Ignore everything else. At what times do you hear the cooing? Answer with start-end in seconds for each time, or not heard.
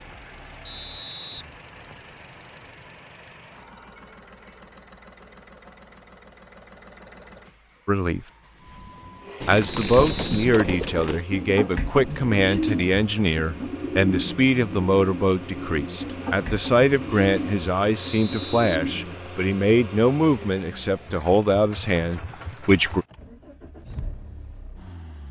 9.4-19.1.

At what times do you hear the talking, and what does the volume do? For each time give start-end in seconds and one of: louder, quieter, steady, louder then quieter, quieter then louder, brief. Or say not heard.
7.8-8.2 brief
9.4-23.1 steady.